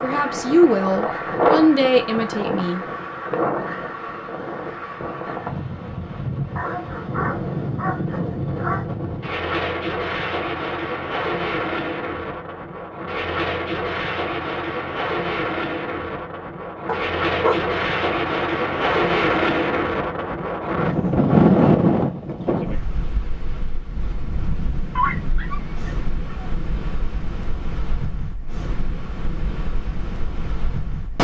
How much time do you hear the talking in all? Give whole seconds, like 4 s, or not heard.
3 s.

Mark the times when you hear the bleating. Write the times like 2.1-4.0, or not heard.
not heard.